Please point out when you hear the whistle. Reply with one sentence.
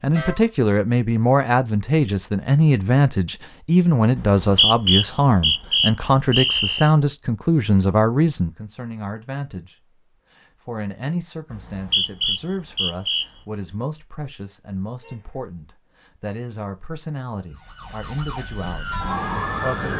The whistle can be heard from 4.2 to 6.9 s and from 11.5 to 13.2 s.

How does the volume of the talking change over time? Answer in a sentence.
The volume of the talking goes down.